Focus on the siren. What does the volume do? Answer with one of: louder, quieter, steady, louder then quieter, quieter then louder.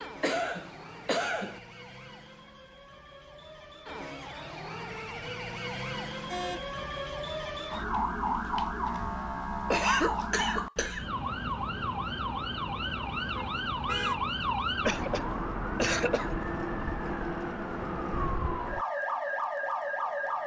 louder.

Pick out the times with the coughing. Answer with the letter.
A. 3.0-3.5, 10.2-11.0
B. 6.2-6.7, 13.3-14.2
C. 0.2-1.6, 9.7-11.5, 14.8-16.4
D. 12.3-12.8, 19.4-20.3
C.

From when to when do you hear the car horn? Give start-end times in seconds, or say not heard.
6.2-6.7, 13.3-14.2.